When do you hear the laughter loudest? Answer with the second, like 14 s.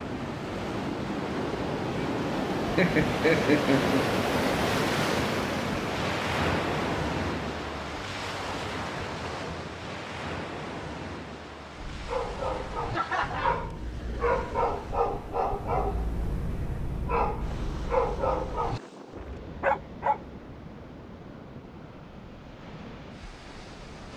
3 s.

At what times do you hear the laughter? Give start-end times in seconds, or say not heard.
2.8-4.2, 12.9-13.7.